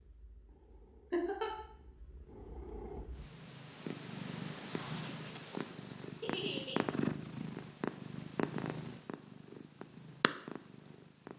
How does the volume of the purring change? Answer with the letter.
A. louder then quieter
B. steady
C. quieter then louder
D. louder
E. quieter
A.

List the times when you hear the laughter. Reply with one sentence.
The laughter can be heard from 1.1 to 1.6 s and from 6.2 to 6.8 s.